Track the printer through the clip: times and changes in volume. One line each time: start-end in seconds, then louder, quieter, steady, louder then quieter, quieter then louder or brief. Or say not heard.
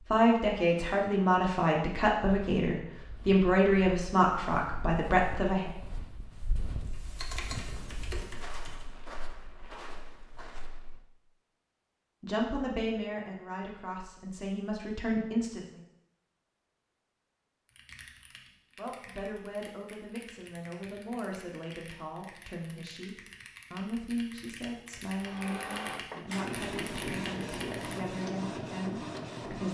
25.1-29.6 steady.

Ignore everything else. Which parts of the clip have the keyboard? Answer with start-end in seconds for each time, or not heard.
6.8-8.9, 17.6-28.4.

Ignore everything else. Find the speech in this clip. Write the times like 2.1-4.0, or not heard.
0.0-5.7, 12.2-15.8, 18.8-29.6.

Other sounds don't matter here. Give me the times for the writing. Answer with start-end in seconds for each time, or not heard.
not heard.